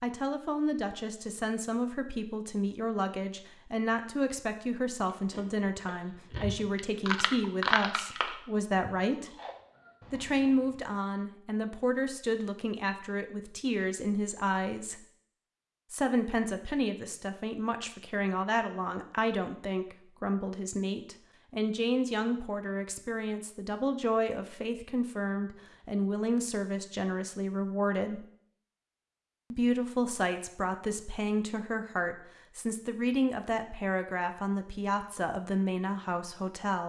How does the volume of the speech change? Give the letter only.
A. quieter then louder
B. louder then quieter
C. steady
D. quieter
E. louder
C.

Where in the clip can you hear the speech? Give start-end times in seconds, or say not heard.
0.0-9.3, 10.1-15.0, 15.9-28.2, 29.5-36.8.